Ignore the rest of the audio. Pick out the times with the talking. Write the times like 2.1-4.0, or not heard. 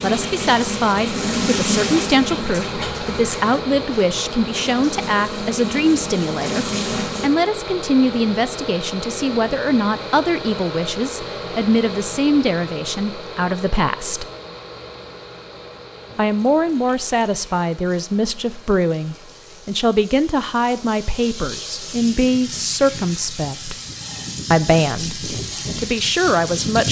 0.0-14.2, 16.1-23.8, 24.5-26.8.